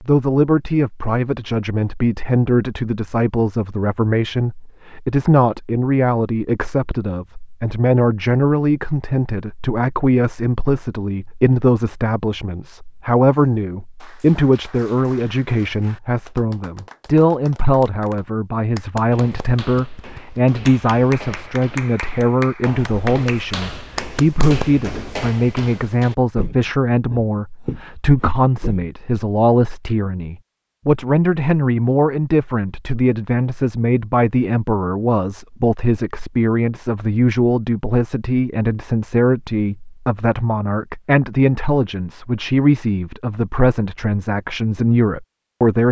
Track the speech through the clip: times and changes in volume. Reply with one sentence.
The speech can be heard from 0.0 to 45.8 s, at a steady volume.